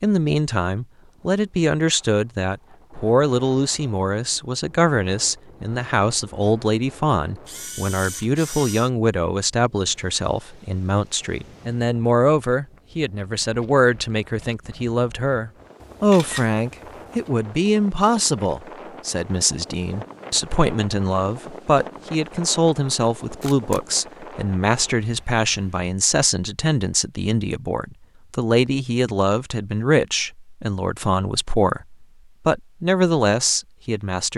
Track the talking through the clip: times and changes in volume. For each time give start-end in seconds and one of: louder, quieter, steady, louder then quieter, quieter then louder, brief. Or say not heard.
0.0-34.3 steady.